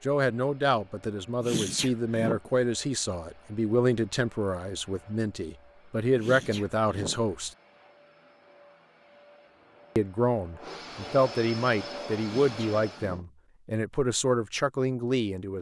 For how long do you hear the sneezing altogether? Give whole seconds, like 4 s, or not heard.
3 s.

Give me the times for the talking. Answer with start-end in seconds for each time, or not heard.
0.0-7.5, 9.9-15.5.